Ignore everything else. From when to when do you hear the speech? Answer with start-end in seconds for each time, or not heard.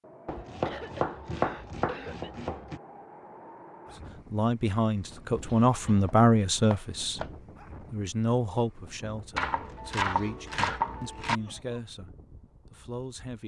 4.3-7.2, 7.9-13.4.